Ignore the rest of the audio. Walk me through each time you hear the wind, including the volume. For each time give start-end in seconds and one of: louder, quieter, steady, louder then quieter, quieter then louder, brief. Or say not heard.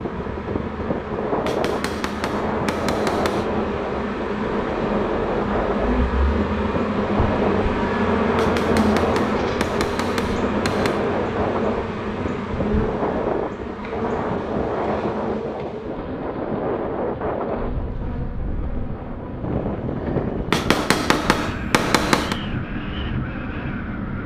0.0-24.2 steady.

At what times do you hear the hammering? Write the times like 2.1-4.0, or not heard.
1.4-3.5, 8.3-11.1, 20.5-22.4.